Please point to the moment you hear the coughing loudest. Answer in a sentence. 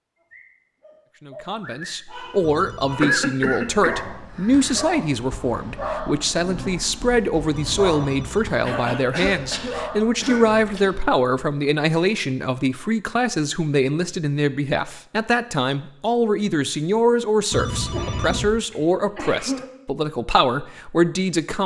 The loudest moment of the coughing is at 3 seconds.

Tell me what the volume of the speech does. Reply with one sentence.
The loudness of the speech stays about the same.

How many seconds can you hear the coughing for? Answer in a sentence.
The coughing can be heard for 6 seconds in total.